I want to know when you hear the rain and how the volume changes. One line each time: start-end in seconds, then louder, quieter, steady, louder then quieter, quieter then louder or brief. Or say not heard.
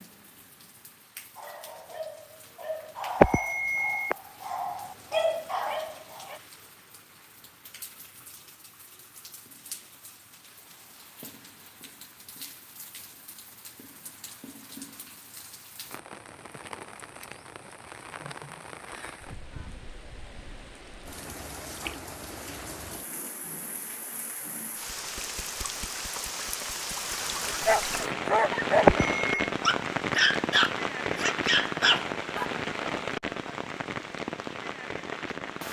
0.0-35.6 louder.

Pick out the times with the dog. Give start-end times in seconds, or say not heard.
1.4-6.4, 27.4-32.5.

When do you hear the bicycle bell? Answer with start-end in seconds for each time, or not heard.
3.2-4.2, 28.9-29.5.